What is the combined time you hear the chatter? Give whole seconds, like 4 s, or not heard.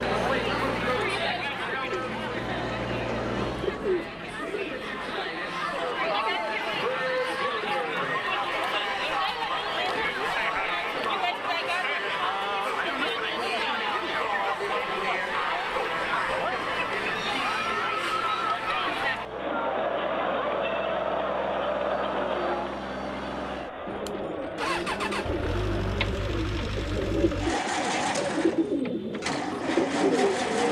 26 s.